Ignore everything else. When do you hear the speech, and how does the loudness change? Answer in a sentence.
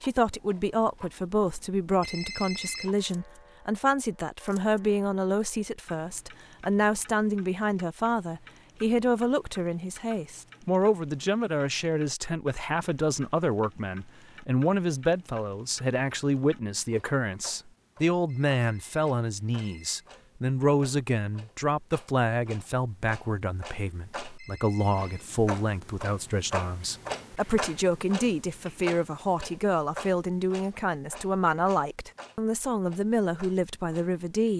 You can hear the speech from 0.0 to 34.5 s, at a steady volume.